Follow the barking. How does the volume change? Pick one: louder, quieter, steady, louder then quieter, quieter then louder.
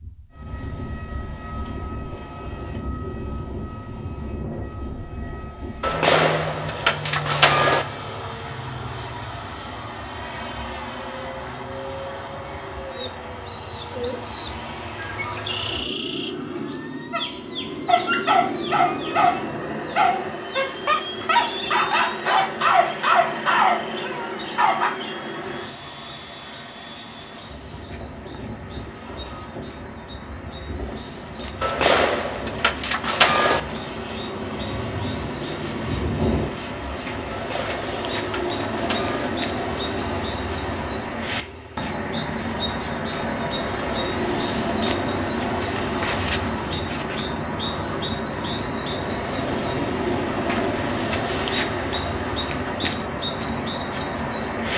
steady.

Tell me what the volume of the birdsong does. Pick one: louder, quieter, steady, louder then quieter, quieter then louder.
quieter then louder.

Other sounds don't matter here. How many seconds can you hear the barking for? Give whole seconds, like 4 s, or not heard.
8 s.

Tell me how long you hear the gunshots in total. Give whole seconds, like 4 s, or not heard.
6 s.